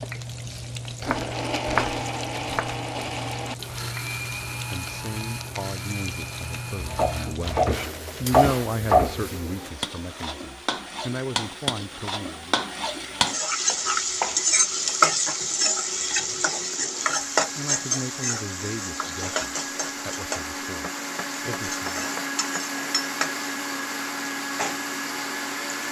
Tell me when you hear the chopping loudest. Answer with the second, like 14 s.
9 s.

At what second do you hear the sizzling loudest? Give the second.
15 s.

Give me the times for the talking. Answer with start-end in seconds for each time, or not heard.
4.7-12.7, 17.6-22.1.